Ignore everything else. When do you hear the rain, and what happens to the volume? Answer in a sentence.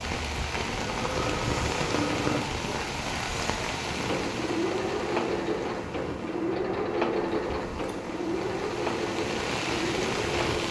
The rain can be heard from 0.0 to 10.6 s, getting quieter then louder.